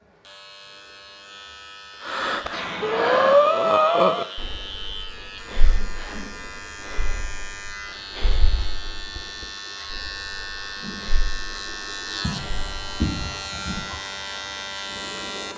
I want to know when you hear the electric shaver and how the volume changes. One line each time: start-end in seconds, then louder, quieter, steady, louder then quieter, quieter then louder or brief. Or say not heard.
0.0-15.5 louder.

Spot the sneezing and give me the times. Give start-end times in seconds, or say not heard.
2.5-3.4, 5.8-6.3, 12.2-14.0.